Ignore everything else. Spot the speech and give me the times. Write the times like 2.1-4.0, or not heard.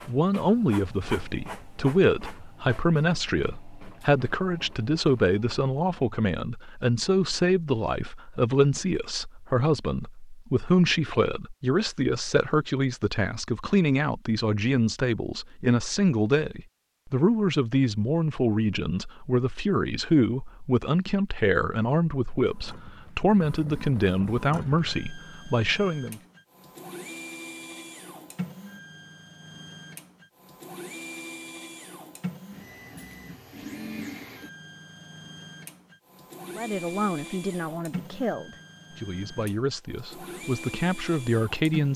0.1-26.2, 36.5-41.9.